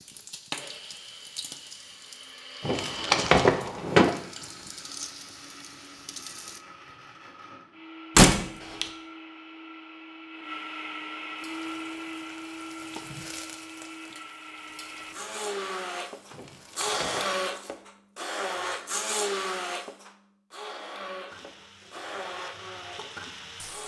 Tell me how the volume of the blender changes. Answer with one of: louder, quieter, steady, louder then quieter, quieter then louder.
louder.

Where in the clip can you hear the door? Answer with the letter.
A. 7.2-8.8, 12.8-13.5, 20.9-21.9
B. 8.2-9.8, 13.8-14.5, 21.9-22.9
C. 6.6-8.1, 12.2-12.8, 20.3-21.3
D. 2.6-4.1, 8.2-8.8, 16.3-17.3
D.